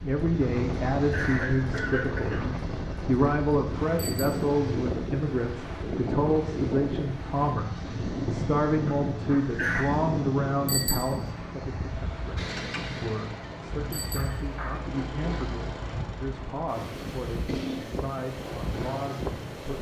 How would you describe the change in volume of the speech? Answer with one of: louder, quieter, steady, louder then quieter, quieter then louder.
quieter.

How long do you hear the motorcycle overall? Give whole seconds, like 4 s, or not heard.
20 s.